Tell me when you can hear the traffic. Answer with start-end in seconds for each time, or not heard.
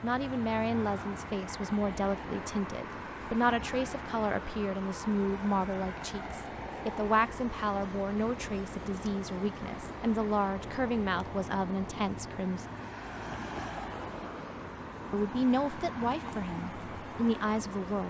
0.0-18.0.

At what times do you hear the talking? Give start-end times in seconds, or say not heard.
0.0-12.7, 15.1-18.0.